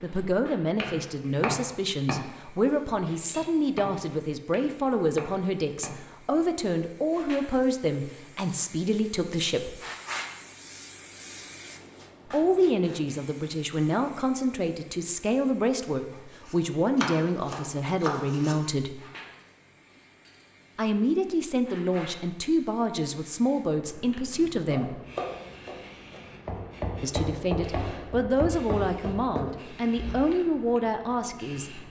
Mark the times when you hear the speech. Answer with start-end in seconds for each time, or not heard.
0.0-9.8, 12.3-19.0, 20.8-25.0, 27.0-31.8.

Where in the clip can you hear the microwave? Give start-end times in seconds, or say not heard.
not heard.